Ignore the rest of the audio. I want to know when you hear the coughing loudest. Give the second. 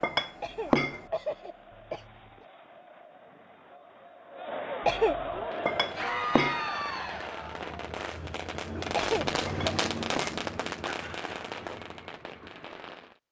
5 s.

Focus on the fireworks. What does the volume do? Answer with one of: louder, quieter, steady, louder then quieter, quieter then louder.
louder then quieter.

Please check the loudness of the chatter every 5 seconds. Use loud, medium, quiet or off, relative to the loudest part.
medium, loud, off.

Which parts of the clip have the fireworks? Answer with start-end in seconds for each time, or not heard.
5.3-13.2.